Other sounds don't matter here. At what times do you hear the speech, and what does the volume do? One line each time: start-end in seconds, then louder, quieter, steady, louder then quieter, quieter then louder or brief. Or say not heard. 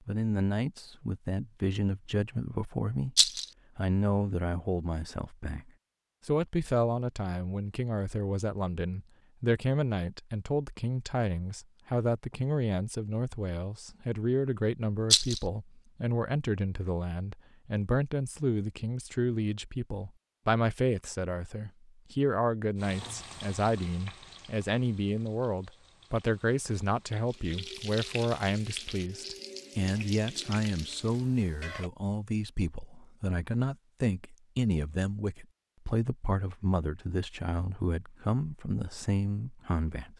0.1-40.1 steady.